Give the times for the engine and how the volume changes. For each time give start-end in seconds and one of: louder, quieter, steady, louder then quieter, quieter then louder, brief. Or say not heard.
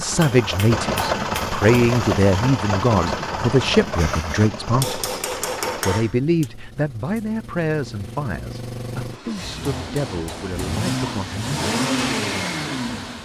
0.0-13.1 quieter then louder.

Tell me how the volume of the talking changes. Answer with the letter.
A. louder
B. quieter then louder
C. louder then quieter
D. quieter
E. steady
D.